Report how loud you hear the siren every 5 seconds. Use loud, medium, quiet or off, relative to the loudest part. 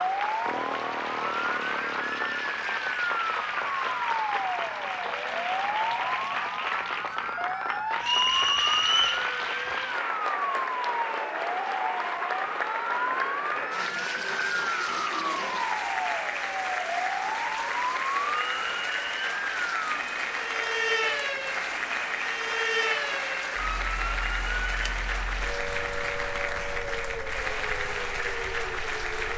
loud, loud, loud, loud, loud, medium.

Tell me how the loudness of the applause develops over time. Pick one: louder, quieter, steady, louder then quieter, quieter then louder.
steady.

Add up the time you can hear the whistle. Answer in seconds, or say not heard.
2 s.